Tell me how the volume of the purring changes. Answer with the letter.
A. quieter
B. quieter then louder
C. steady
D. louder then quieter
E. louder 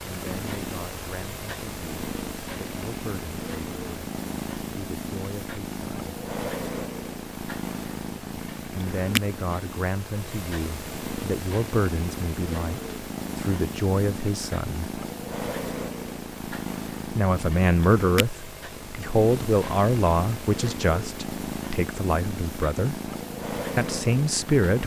C.